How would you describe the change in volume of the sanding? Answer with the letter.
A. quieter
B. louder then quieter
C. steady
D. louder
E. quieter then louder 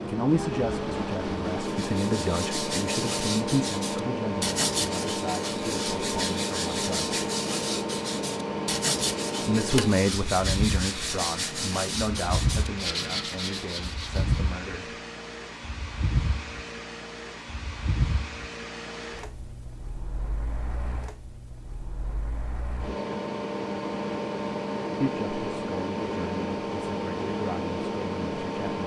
C.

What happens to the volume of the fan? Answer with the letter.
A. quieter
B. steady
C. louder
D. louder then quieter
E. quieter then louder
E.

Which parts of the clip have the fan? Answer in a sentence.
You can hear the fan from 0.0 to 28.8 s.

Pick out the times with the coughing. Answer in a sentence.
The coughing can't be heard in this clip.